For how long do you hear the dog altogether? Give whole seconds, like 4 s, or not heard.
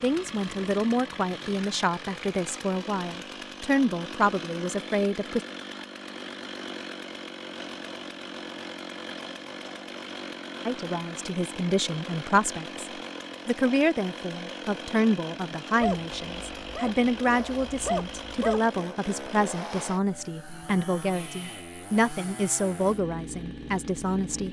3 s.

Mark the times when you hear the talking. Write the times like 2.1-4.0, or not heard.
0.0-5.4, 10.7-24.4.